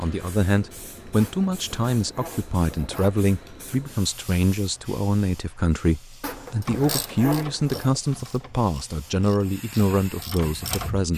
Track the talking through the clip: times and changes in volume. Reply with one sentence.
The talking can be heard from 0.0 to 11.1 s, at a steady volume.